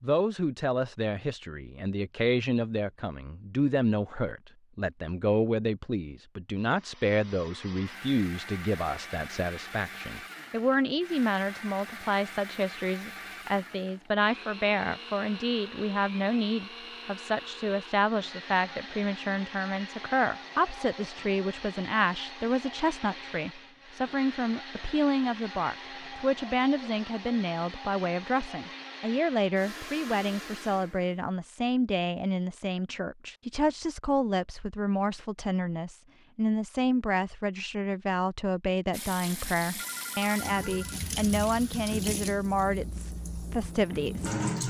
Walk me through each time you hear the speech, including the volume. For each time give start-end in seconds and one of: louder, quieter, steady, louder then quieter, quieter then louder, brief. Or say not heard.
0.0-44.4 steady.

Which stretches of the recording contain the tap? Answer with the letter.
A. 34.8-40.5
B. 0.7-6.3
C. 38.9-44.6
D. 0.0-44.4
C.